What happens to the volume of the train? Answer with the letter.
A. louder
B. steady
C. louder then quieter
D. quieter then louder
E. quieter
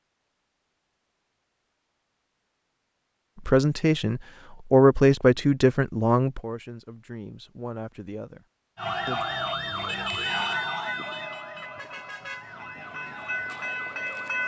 D.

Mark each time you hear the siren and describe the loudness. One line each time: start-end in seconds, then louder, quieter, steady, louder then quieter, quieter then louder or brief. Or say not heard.
8.8-14.4 quieter.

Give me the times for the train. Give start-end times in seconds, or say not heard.
10.2-14.4.